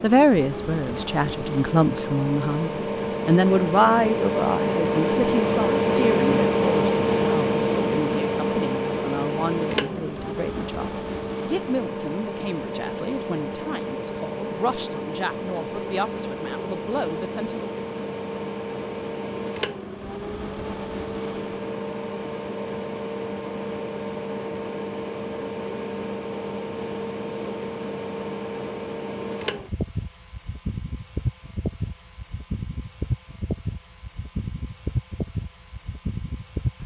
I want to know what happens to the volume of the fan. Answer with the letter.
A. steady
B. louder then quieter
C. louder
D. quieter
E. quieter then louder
D.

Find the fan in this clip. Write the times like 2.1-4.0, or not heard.
0.0-36.8.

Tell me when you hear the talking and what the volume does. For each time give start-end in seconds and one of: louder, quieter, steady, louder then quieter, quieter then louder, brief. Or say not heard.
0.0-17.6 quieter.